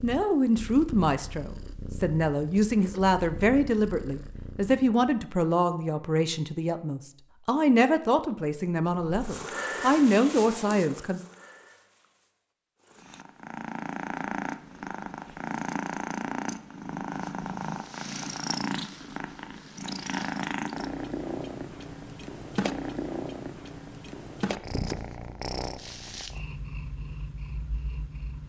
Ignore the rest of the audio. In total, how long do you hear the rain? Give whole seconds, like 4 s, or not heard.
not heard.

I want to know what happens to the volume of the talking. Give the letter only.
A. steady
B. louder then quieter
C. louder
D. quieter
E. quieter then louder
A.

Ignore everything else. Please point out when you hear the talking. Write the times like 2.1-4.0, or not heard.
0.0-11.2.